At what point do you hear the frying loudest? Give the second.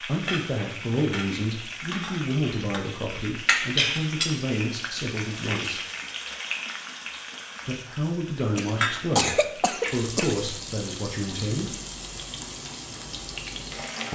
4 s.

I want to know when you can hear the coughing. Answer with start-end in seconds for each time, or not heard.
8.6-10.6.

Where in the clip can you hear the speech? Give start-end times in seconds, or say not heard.
0.0-5.8, 7.7-11.8.